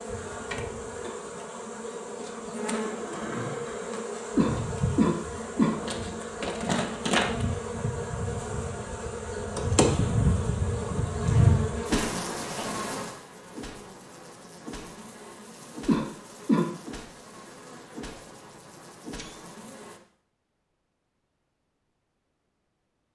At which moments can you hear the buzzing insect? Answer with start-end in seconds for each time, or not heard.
0.0-20.0.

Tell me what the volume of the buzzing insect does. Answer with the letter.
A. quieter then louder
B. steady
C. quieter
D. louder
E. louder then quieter
E.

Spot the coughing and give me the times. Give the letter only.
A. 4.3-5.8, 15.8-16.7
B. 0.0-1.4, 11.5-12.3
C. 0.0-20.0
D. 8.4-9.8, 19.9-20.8
A.